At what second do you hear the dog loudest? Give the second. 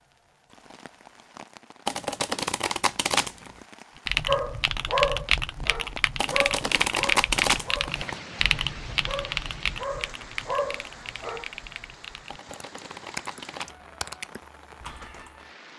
5 s.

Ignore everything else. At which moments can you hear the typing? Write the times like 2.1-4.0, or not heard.
4.0-15.4.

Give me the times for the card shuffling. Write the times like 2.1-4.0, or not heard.
1.9-3.5, 6.2-8.2, 12.2-13.9.